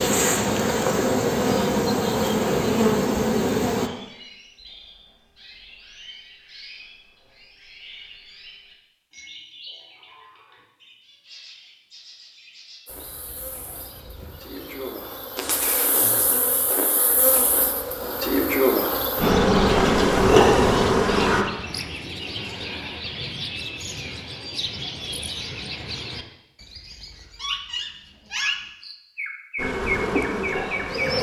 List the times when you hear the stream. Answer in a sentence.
You can't hear the stream here.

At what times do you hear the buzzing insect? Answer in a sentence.
The buzzing insect can be heard from 0.0 to 3.9 s, from 12.8 to 21.4 s and from 29.6 to 31.1 s.